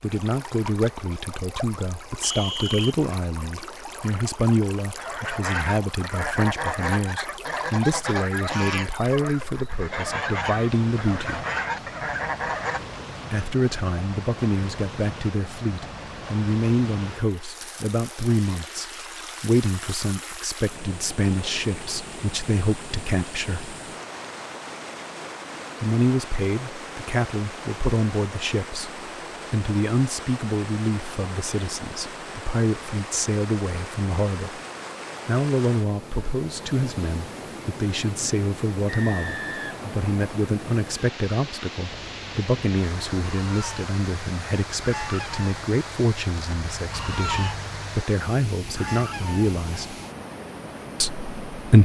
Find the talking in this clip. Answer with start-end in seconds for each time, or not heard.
0.0-11.4, 13.3-23.8, 25.8-34.6, 35.2-50.0, 51.0-51.8.